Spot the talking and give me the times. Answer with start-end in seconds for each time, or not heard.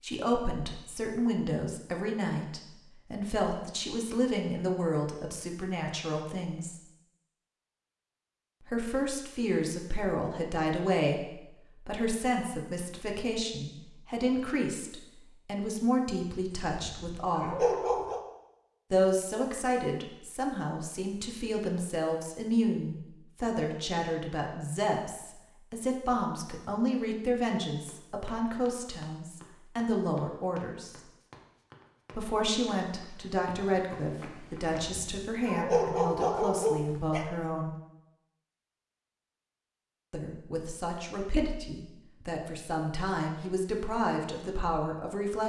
0.0-6.8, 8.7-17.6, 18.9-30.9, 32.1-37.8, 40.1-45.4.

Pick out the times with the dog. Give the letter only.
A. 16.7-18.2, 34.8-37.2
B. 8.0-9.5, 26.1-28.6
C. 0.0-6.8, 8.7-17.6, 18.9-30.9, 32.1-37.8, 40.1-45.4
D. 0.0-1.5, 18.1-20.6
A.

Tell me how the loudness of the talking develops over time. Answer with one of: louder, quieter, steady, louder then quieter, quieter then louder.
steady.